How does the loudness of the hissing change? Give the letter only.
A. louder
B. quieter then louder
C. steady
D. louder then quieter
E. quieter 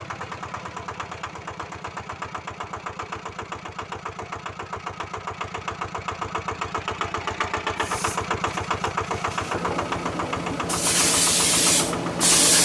A.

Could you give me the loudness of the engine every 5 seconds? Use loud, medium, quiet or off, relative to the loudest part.
medium, loud, loud.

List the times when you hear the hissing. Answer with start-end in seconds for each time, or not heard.
7.8-12.6.